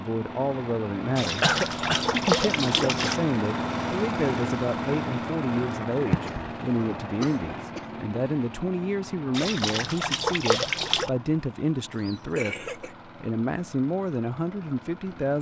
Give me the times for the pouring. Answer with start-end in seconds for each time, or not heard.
1.1-3.2, 9.3-11.1.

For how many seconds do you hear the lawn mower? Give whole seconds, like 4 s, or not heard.
15 s.